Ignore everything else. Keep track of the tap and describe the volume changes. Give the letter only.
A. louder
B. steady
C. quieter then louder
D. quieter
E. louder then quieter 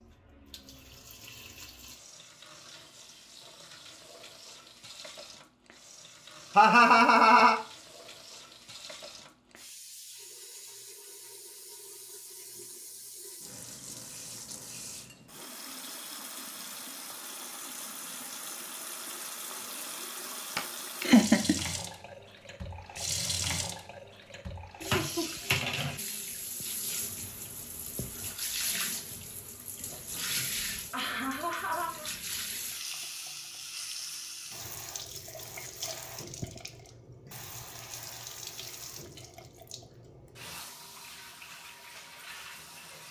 E.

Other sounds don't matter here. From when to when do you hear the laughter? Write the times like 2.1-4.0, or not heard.
6.5-7.6, 20.6-21.6, 29.8-32.1.